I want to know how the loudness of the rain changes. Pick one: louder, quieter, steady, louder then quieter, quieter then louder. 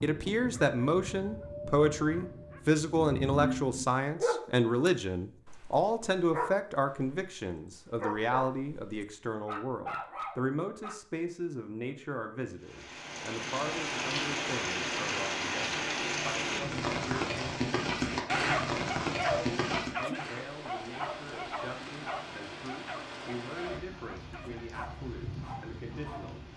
quieter.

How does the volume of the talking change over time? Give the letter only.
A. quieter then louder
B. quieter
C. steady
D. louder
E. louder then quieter
B.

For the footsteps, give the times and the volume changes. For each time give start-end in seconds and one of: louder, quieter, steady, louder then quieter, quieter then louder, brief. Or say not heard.
not heard.